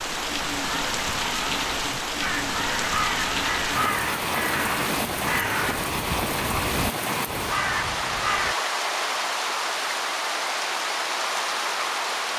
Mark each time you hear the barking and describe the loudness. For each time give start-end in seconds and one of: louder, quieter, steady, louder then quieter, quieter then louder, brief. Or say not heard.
not heard.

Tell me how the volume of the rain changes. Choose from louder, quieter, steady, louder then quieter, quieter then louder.
steady.